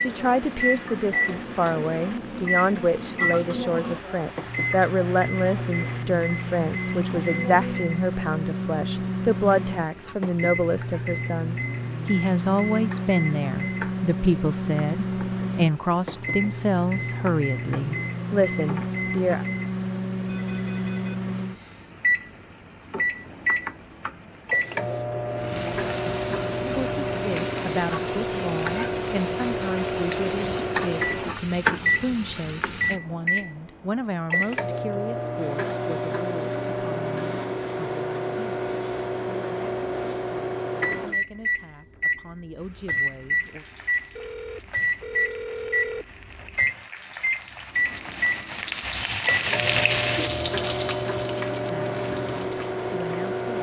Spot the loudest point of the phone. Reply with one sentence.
The loudest moment of the phone is at 46 seconds.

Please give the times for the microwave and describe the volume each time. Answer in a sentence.
The microwave can be heard from 0.0 to 53.5 s, at a steady volume.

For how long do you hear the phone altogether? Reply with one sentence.
The phone can be heard for 3 seconds in total.